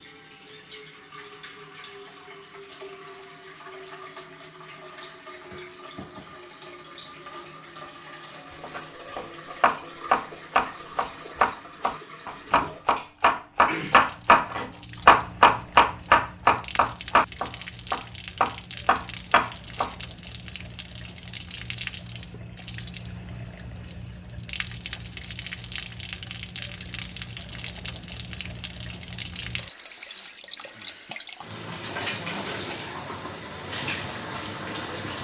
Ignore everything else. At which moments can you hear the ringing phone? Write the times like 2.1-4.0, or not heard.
not heard.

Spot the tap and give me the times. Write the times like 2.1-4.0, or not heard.
0.0-35.1.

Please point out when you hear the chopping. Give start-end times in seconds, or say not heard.
8.6-19.9.